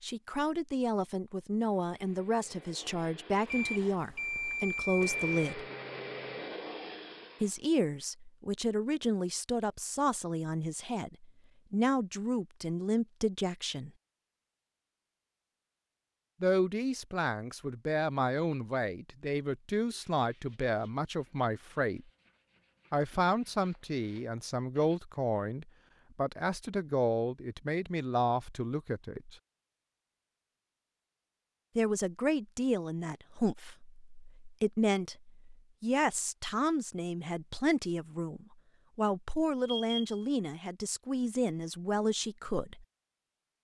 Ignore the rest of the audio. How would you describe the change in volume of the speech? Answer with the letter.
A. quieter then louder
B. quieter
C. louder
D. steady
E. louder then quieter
D.